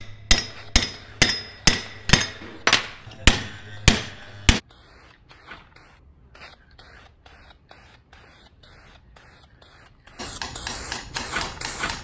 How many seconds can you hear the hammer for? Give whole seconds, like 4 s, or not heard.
6 s.